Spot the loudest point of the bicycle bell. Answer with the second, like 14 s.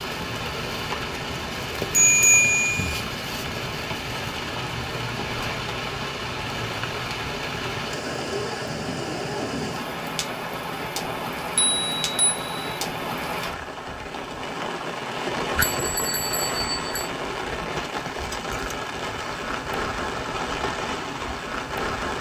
2 s.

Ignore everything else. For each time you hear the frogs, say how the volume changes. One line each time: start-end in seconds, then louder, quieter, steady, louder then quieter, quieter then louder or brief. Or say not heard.
not heard.